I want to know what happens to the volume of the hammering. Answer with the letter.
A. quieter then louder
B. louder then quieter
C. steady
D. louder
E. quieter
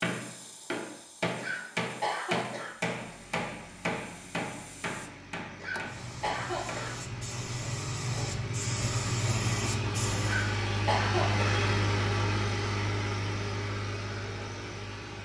E.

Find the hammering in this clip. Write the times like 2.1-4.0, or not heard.
0.0-7.0.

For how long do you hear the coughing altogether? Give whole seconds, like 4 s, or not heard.
4 s.